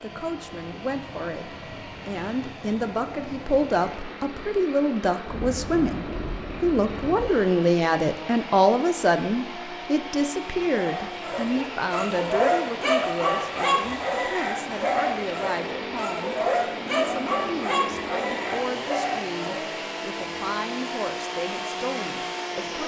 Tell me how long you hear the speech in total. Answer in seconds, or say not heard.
23 s.